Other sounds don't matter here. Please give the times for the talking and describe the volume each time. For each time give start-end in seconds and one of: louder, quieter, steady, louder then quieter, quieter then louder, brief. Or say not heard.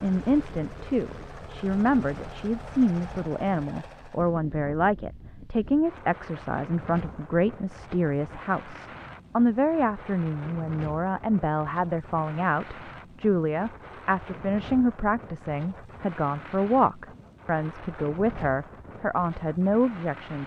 0.0-20.4 steady.